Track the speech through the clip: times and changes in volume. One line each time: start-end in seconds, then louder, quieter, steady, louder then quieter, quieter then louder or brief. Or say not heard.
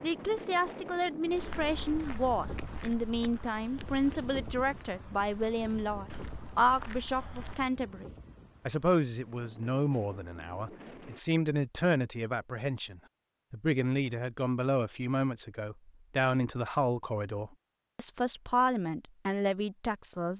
0.0-20.3 steady.